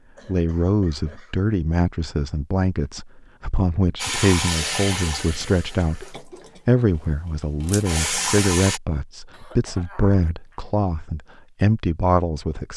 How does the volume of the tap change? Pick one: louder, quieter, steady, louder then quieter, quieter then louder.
quieter then louder.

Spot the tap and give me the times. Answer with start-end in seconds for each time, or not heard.
4.0-8.8.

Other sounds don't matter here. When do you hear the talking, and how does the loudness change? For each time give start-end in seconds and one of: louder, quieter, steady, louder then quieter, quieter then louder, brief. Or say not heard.
0.2-12.7 steady.